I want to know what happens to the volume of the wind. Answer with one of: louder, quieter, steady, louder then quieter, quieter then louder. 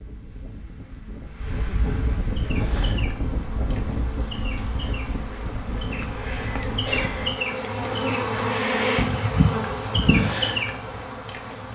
louder then quieter.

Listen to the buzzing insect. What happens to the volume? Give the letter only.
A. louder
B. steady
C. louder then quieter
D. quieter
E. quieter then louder
A.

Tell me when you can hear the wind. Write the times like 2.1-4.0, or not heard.
0.0-7.4.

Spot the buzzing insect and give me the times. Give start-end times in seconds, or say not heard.
2.2-11.7.